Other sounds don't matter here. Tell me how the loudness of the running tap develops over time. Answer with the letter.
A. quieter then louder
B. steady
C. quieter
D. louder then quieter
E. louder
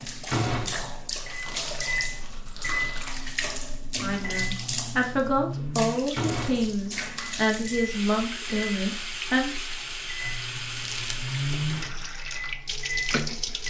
B.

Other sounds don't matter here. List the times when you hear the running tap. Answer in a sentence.
You can hear the running tap from 0.0 to 13.6 s.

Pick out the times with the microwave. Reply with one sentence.
The microwave can be heard from 0.1 to 13.6 s.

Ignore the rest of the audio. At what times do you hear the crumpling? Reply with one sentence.
The crumpling can be heard from 1.4 to 3.2 s and from 10.7 to 11.2 s.